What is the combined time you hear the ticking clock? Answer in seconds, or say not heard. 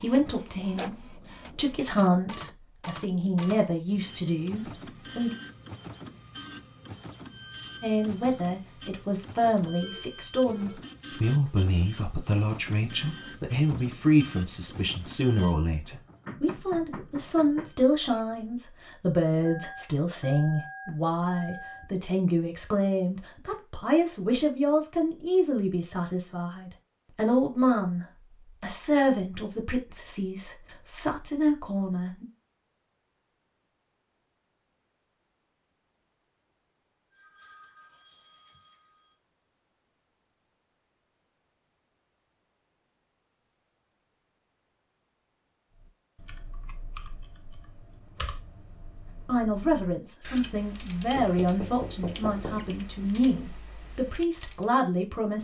not heard.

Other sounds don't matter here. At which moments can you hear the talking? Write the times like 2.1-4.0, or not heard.
0.0-5.3, 7.8-32.2, 49.2-55.4.